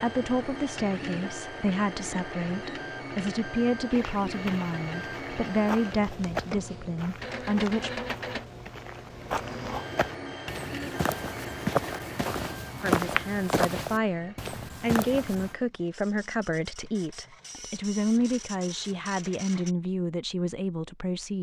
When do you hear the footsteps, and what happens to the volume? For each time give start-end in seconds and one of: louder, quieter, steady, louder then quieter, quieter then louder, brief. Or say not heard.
3.9-15.5 quieter then louder.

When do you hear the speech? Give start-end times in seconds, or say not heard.
0.0-8.0, 12.8-21.3.